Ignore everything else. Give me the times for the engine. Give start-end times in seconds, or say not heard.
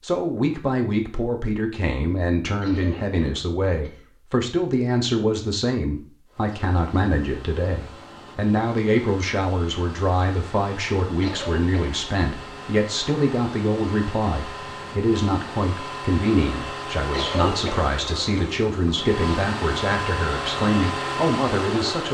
6.2-22.0.